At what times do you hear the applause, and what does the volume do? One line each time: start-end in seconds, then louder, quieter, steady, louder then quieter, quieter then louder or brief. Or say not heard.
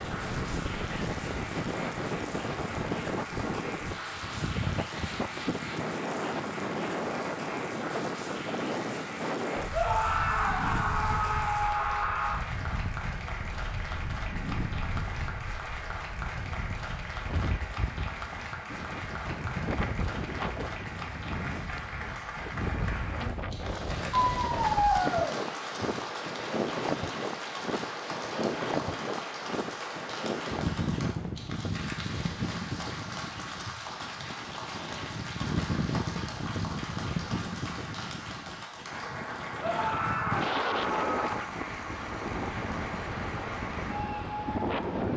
0.0-45.1 steady.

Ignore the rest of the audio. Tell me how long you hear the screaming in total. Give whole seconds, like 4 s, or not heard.
6 s.